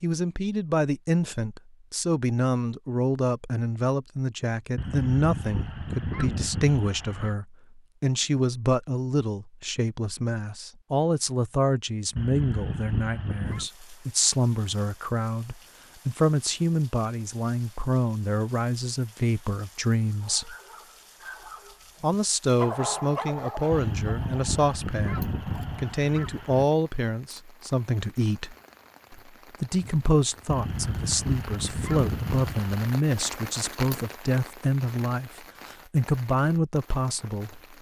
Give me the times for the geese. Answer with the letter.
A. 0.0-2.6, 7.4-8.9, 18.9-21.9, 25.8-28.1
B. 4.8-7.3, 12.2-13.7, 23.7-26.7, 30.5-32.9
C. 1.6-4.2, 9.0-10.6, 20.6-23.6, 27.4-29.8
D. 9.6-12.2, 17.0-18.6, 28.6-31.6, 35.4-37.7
B.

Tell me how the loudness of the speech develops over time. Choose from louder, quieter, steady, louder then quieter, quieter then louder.
steady.